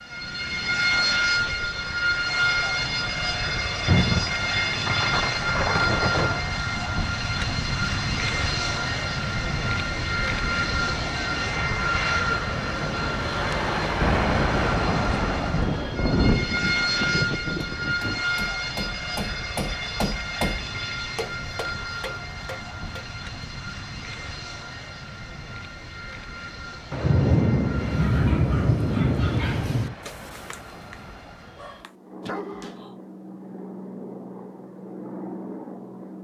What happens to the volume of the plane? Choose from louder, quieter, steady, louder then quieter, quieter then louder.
quieter.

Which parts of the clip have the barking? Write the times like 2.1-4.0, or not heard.
27.8-33.0.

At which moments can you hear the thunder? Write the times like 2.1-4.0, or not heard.
3.9-6.5, 14.0-18.2, 26.9-29.9.